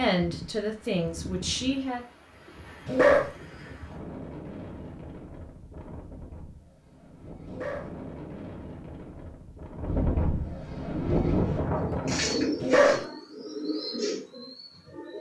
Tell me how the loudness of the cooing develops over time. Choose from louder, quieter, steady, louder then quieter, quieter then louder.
louder then quieter.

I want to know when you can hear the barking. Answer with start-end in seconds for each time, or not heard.
2.9-3.3, 7.5-8.0, 12.6-13.1.